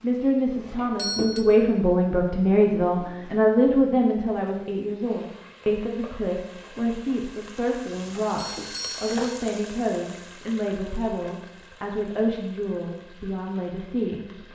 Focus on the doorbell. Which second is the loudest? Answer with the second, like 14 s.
1 s.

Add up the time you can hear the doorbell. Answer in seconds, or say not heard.
2 s.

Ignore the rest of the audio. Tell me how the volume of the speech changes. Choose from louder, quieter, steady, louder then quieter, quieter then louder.
quieter.